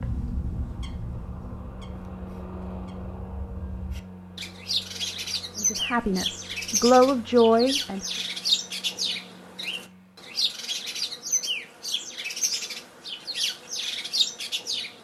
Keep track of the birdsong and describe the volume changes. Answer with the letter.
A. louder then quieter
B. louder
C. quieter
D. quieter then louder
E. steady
B.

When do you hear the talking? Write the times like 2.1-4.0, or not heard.
5.5-8.0.